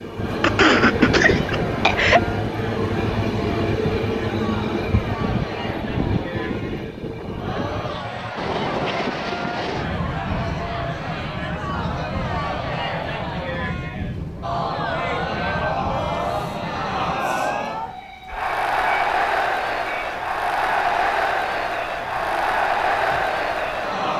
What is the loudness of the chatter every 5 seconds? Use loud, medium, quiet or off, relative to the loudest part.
medium, medium, medium, loud, loud.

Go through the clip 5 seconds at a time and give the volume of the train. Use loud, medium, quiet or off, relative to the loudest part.
loud, loud, medium, medium, medium.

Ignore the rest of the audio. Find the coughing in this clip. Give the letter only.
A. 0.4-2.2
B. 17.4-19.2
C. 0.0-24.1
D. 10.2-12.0
A.